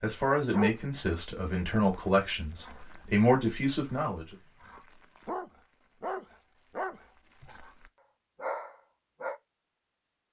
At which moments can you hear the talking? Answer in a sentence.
The talking can be heard from 0.0 to 4.3 s.